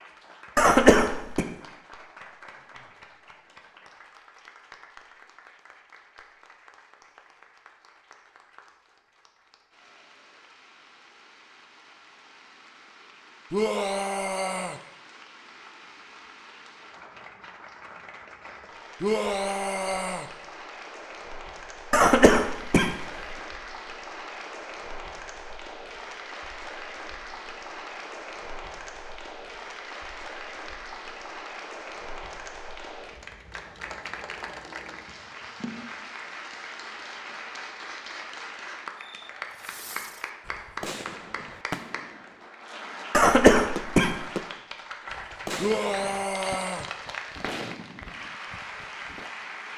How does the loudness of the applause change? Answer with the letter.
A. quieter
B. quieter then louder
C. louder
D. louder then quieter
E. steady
C.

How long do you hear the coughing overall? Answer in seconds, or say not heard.
3 s.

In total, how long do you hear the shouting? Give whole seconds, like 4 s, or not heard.
4 s.